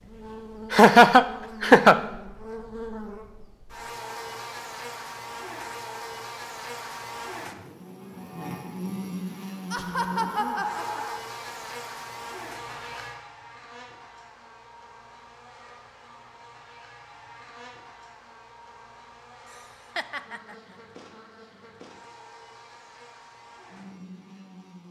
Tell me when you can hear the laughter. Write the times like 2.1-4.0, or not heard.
0.7-2.0, 9.7-11.2, 19.5-20.8.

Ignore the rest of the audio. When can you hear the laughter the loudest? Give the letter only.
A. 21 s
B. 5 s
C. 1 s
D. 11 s
C.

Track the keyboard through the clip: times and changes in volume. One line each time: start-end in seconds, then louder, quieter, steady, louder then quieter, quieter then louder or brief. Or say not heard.
not heard.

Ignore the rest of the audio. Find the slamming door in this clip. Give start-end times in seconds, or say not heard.
not heard.